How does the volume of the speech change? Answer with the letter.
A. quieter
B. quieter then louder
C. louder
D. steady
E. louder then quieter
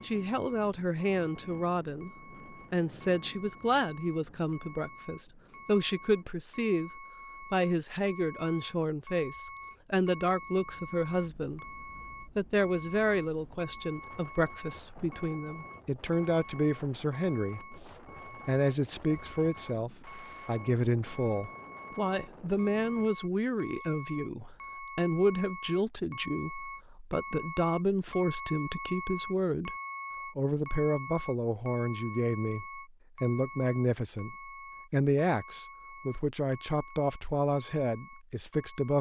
D.